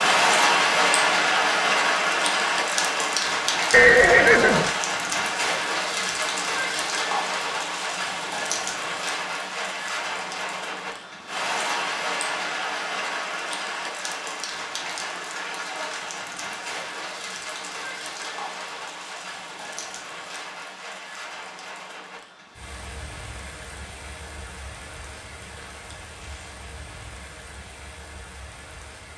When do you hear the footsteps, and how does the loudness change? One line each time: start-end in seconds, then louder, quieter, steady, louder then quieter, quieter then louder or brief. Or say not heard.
not heard.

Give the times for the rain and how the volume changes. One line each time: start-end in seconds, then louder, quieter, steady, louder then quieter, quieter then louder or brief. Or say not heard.
0.0-29.1 quieter.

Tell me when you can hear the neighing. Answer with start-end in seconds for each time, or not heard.
3.7-4.7.